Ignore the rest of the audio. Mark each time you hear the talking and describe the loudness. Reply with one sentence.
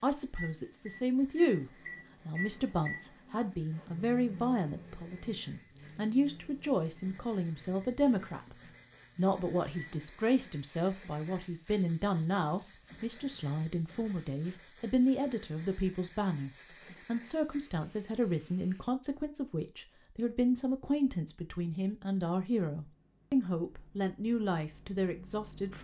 You can hear the talking from 0.0 to 25.7 s, at a steady volume.